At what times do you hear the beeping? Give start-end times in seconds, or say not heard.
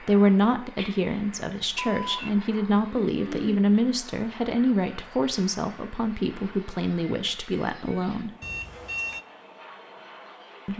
0.8-2.3, 8.4-9.2.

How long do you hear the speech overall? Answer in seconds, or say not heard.
8 s.